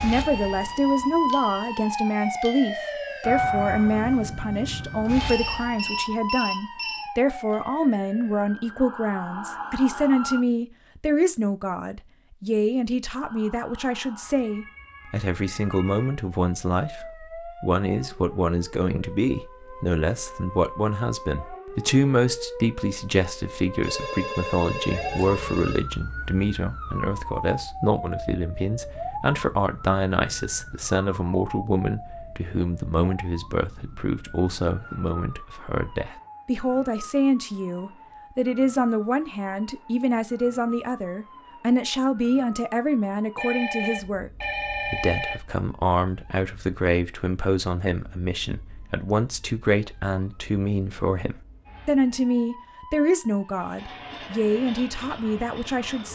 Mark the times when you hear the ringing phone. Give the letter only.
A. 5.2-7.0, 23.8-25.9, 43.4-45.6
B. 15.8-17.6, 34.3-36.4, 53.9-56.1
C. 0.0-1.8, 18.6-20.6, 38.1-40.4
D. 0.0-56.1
A.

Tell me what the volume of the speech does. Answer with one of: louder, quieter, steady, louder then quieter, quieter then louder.
steady.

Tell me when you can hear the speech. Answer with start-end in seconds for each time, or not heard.
0.0-56.1.